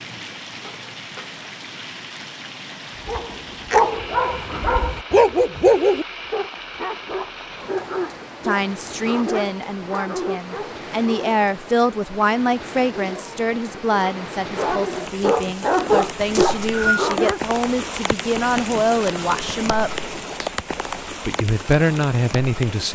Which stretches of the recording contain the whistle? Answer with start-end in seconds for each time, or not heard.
16.3-17.1.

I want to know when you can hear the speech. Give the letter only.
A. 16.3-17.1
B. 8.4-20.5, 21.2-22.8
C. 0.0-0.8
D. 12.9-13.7
B.